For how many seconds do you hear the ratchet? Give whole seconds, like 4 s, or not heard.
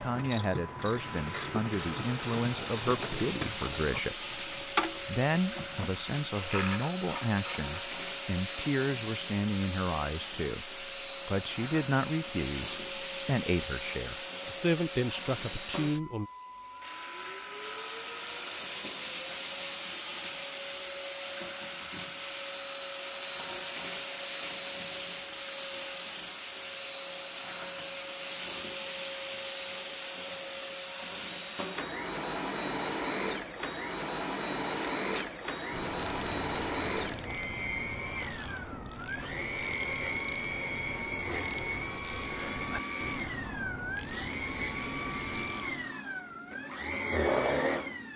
19 s.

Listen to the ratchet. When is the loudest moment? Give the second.
5 s.